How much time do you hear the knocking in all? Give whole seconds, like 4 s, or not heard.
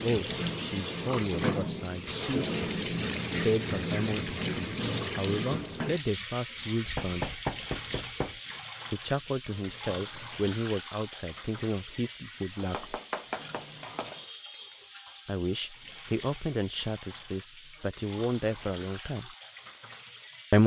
3 s.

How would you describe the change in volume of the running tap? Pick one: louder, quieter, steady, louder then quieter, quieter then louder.
quieter.